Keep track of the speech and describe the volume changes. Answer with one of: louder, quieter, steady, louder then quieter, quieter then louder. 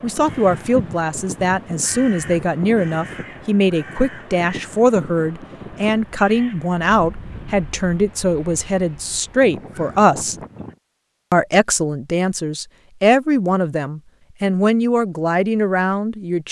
steady.